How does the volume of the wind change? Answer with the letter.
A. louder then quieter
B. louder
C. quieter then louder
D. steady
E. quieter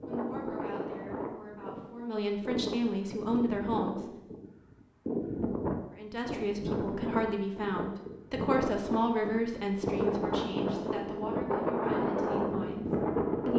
B.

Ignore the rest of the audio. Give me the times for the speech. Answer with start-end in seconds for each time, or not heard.
0.0-4.0, 6.0-13.5.